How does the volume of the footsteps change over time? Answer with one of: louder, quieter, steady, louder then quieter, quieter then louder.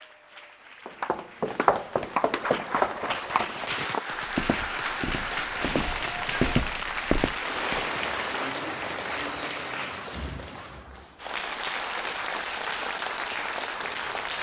quieter then louder.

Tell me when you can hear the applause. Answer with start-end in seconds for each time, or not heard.
0.0-14.3.